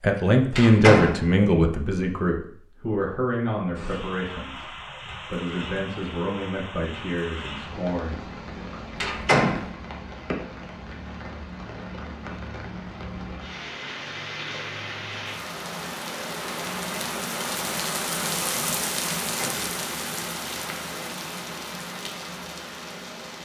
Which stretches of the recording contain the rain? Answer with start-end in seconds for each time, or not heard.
3.8-23.3.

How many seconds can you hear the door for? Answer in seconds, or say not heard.
2 s.